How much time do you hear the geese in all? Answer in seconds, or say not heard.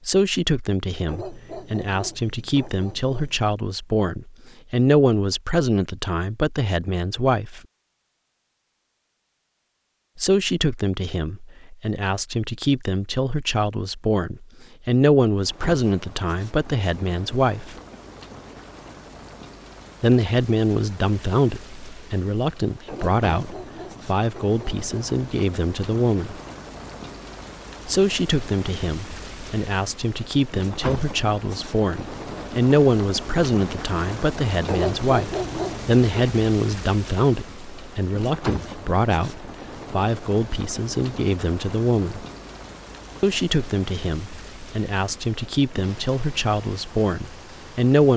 not heard.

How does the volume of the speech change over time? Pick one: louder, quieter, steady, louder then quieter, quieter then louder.
steady.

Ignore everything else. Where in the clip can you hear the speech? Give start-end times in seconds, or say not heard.
0.1-7.6, 10.2-17.8, 20.0-26.4, 27.9-42.2, 43.2-48.1.